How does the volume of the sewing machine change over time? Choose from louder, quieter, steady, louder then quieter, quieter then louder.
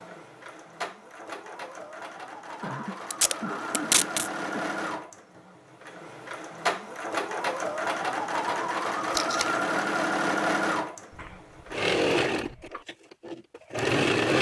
louder.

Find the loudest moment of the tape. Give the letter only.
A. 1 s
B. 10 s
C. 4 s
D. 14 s
C.